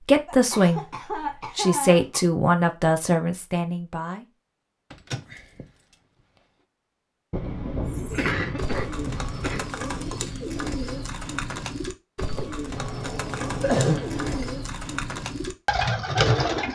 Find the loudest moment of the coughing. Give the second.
14 s.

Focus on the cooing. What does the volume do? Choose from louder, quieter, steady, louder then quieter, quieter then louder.
louder.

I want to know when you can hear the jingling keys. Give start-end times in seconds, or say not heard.
4.9-6.0, 12.7-14.6.